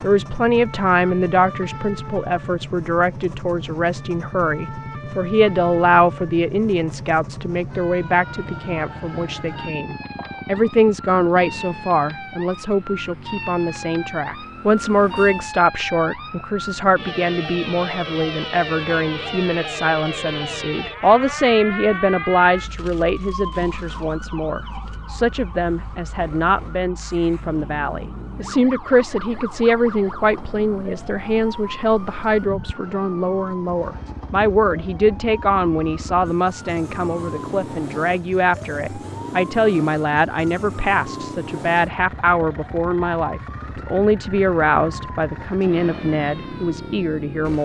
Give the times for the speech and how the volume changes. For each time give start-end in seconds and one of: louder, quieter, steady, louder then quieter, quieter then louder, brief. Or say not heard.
0.0-47.6 steady.